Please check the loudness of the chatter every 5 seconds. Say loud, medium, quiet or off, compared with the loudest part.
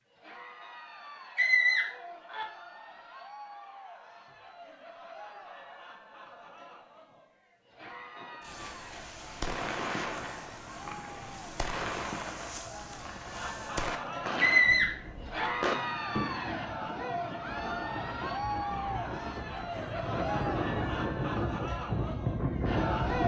quiet, quiet, medium, loud, loud.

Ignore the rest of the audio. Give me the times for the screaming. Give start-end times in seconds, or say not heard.
1.4-2.5, 14.4-15.5.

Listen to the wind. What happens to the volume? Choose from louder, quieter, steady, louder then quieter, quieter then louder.
louder.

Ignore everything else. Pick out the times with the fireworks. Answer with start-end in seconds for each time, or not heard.
8.4-16.9.